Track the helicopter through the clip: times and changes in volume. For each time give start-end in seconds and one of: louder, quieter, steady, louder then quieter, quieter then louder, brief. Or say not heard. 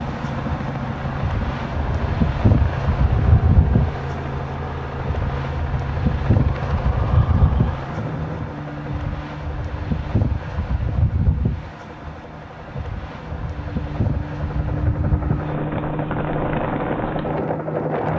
0.0-18.1 quieter then louder.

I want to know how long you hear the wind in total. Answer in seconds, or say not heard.
18 s.